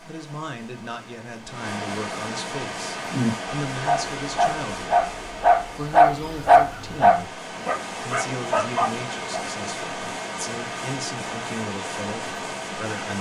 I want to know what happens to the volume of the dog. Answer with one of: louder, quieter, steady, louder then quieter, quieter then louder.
louder then quieter.